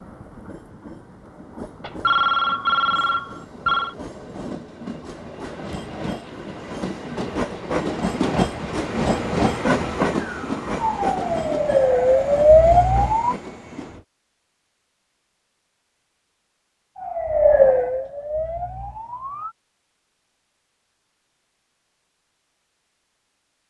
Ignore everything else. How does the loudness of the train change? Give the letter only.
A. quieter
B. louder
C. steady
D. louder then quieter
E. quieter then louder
D.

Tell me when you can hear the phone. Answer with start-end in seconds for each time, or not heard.
1.8-4.0.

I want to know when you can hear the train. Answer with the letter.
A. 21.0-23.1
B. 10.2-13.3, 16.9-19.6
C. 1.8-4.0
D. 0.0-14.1
D.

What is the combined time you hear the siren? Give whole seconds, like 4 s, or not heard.
6 s.